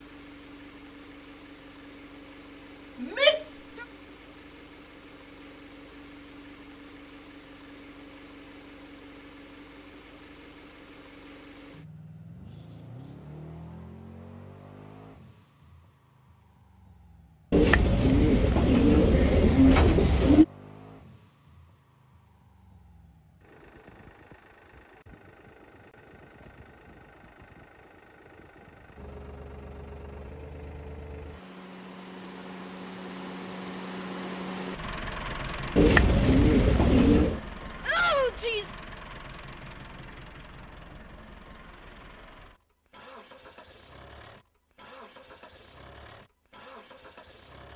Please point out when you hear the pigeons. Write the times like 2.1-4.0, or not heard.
17.5-20.4, 35.8-37.4.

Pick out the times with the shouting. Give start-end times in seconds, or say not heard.
3.0-3.5, 37.9-38.8.